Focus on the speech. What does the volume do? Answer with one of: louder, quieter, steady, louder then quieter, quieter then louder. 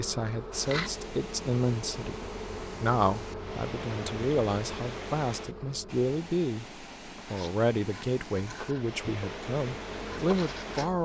steady.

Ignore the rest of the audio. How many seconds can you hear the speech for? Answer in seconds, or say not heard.
11 s.